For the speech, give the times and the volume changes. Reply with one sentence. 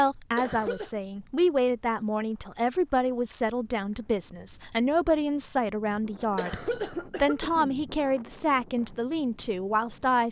You can hear the speech from 0.0 to 10.2 s, at a steady volume.